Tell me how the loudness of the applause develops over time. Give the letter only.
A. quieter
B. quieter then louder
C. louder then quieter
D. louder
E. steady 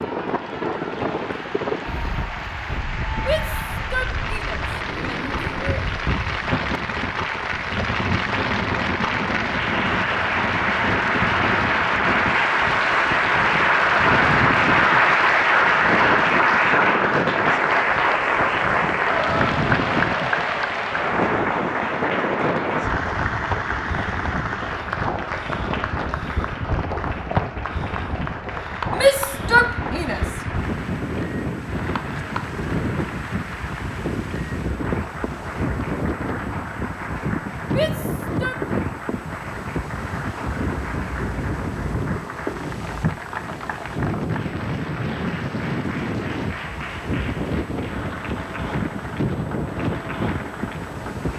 C.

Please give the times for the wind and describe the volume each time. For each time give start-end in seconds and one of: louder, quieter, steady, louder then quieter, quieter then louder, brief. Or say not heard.
0.0-51.3 steady.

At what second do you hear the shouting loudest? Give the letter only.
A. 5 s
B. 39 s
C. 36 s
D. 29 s
D.